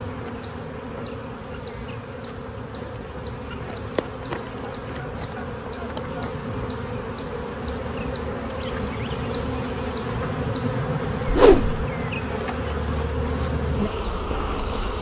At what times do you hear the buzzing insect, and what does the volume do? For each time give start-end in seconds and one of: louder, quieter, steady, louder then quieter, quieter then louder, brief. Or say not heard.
0.0-14.9 louder.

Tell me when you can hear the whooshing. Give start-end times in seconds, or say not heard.
11.2-11.8.